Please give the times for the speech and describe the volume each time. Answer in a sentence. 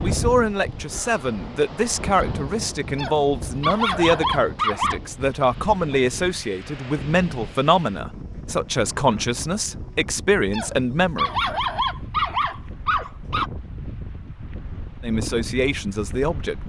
You can hear the speech from 0.0 to 11.3 s, at a steady volume; and briefly from 15.0 to 16.6 s.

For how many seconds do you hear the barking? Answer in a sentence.
You can hear the barking for 5 seconds altogether.